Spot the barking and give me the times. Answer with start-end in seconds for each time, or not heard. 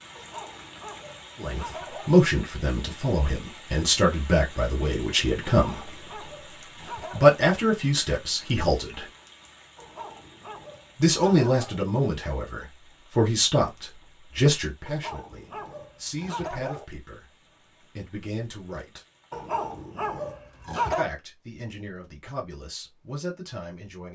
0.1-2.1, 5.6-7.4, 9.8-11.8, 14.8-16.9, 19.3-21.1.